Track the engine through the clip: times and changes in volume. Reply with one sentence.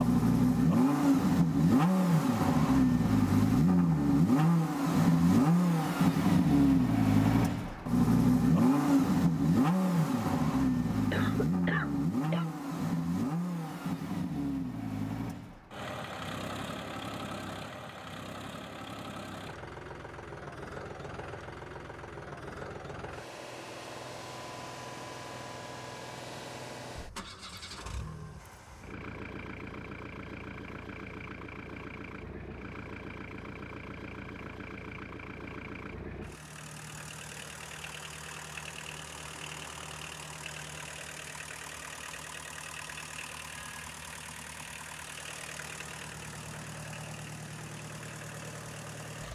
You can hear the engine from 0.0 to 49.2 s, getting quieter.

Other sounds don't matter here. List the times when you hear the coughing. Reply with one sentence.
You can hear the coughing from 11.1 to 12.4 s.